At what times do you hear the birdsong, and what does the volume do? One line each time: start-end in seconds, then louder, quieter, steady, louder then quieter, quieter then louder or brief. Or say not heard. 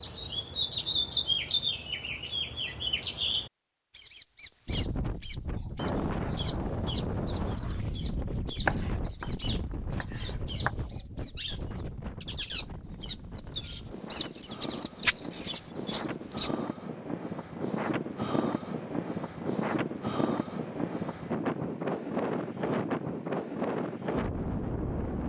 0.0-16.5 quieter then louder.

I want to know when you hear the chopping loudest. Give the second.
9 s.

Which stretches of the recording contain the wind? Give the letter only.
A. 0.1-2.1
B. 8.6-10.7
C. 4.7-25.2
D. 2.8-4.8
C.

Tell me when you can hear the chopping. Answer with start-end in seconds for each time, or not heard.
8.6-10.7.